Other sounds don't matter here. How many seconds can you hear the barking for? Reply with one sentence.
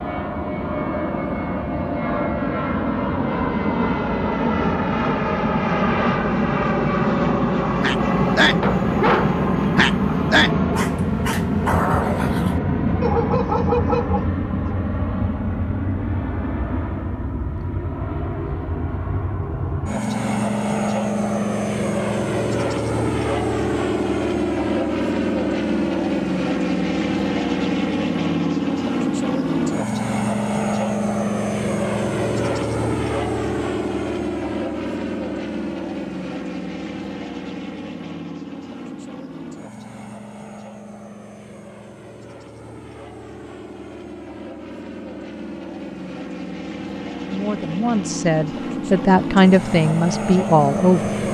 The barking can be heard for 7 seconds in total.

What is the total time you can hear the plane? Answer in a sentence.
You can hear the plane for 51 seconds altogether.